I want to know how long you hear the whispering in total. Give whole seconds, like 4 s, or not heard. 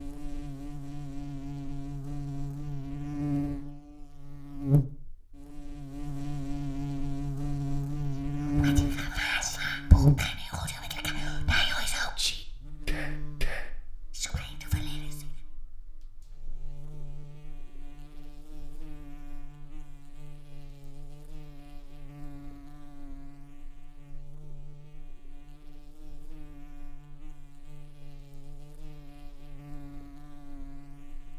7 s.